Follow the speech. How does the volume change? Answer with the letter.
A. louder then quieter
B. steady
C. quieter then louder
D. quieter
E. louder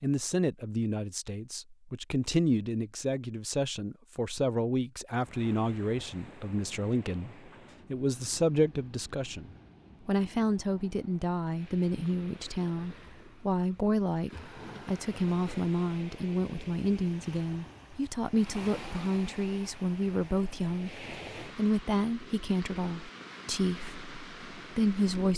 B.